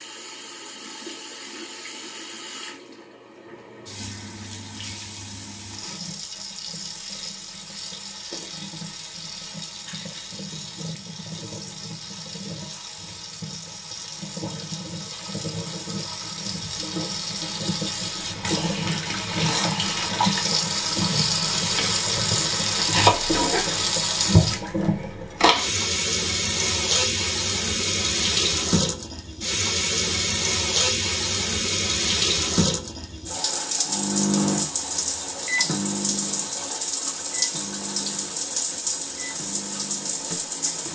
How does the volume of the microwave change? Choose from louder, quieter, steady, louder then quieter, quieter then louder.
quieter.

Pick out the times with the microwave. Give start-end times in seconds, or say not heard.
33.9-40.9.